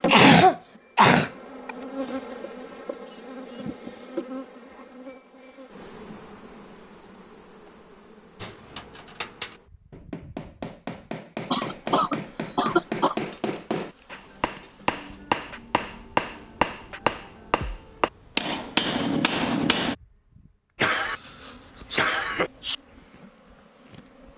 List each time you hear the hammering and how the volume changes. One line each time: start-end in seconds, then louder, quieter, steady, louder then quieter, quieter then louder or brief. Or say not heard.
8.3-19.9 louder.